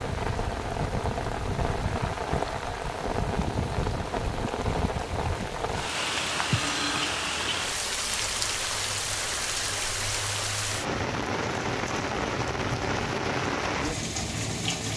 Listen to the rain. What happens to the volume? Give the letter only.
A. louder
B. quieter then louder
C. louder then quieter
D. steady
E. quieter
D.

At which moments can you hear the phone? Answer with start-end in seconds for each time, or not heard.
6.5-7.0.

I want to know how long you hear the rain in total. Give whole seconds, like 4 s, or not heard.
15 s.